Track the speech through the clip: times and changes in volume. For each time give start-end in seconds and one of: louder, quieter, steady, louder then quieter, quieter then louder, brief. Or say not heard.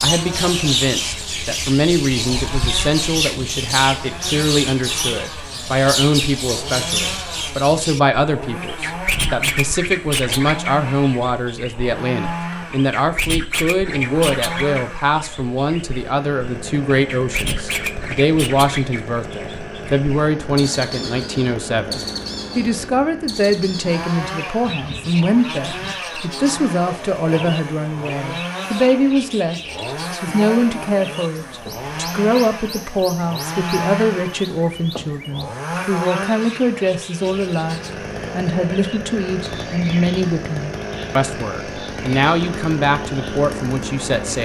0.0-44.3 steady.